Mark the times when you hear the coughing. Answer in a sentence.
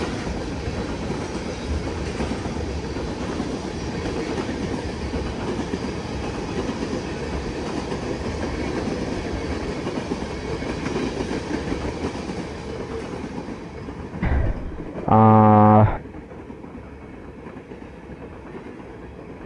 You can't hear the coughing here.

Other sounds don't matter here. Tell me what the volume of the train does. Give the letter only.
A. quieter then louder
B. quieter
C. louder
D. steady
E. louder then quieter
B.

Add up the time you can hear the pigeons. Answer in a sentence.
You can hear the pigeons for 2 seconds altogether.